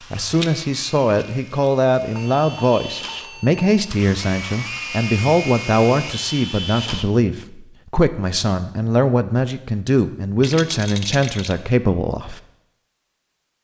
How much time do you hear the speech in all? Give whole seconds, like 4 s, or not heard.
12 s.